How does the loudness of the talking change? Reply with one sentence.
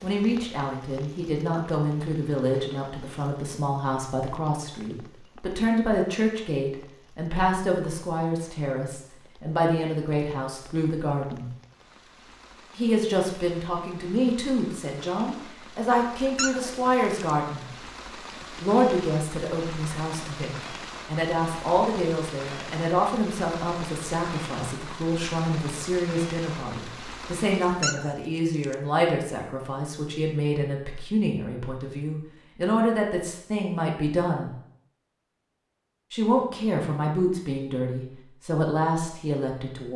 The loudness of the talking stays about the same.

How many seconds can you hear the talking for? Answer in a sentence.
The talking can be heard for 36 seconds in total.